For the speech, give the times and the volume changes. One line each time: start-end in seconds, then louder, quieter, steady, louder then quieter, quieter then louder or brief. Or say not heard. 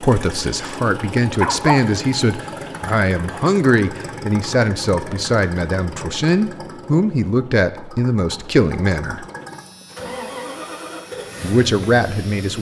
0.0-9.2 steady
11.4-12.5 brief.